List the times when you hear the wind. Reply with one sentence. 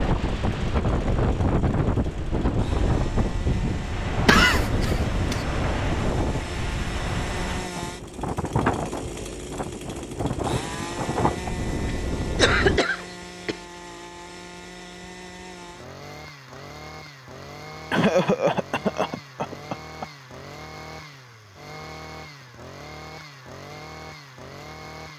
The wind can be heard from 0.0 to 12.8 s.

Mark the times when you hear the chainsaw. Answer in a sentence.
The chainsaw can be heard from 0.1 to 25.1 s.